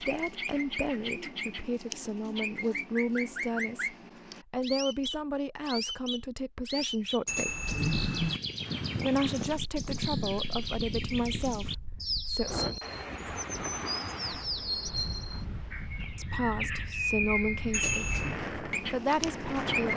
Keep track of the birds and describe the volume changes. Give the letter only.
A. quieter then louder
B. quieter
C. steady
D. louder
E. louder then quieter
C.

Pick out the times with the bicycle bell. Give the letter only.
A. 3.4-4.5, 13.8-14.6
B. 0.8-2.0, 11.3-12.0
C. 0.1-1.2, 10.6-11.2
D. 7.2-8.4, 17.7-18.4
D.